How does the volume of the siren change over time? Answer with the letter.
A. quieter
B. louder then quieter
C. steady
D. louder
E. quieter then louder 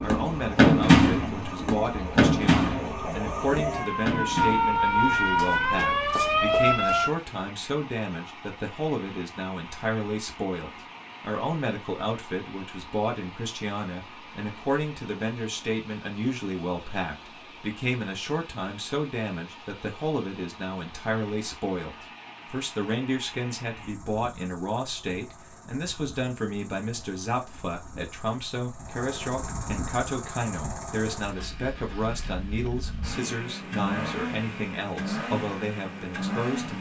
D.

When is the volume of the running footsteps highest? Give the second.
1 s.